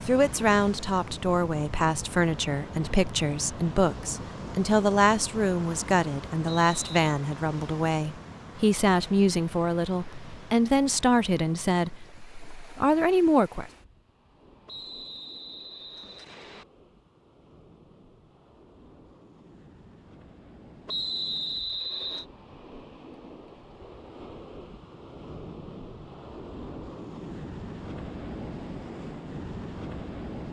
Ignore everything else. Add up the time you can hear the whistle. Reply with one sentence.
You can hear the whistle for 4 seconds altogether.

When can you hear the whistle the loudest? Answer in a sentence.
The volume of the whistle peaks at 21 seconds.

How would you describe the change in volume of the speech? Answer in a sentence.
The loudness of the speech stays about the same.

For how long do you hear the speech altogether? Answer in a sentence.
The speech can be heard for 14 seconds in total.